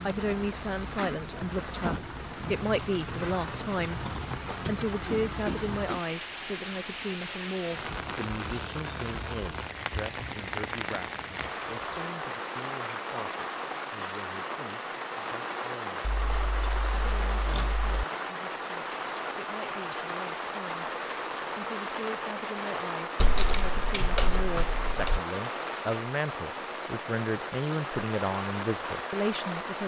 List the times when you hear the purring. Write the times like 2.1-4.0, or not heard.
not heard.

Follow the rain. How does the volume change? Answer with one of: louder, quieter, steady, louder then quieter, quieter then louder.
steady.